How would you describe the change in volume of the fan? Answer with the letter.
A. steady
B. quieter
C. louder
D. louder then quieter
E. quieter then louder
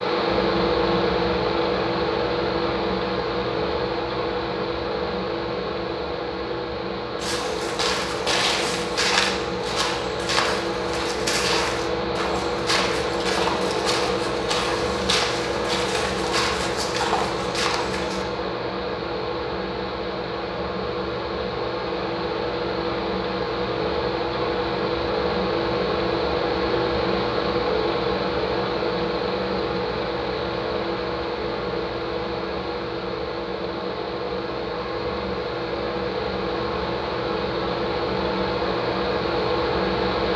A.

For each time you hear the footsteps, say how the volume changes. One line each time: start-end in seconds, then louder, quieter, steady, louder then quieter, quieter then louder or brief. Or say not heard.
7.2-18.2 steady.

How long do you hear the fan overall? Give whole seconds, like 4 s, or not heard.
40 s.